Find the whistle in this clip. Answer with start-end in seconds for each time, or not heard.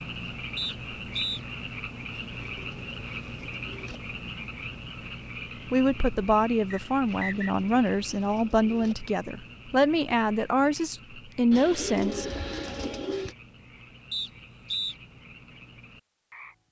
0.6-1.4, 6.7-7.5, 14.1-14.9.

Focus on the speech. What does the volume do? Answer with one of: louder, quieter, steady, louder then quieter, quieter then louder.
steady.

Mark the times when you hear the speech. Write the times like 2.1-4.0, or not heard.
5.7-12.4.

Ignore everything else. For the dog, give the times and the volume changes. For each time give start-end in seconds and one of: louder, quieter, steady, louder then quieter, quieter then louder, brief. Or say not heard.
not heard.